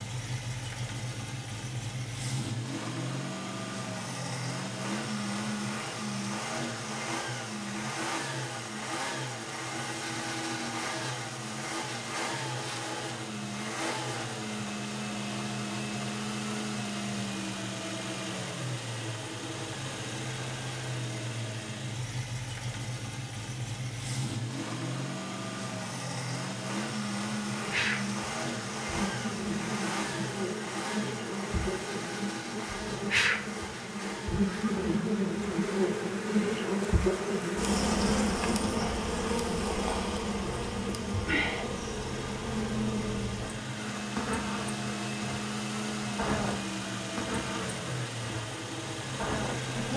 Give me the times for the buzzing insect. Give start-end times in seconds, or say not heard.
27.5-49.9.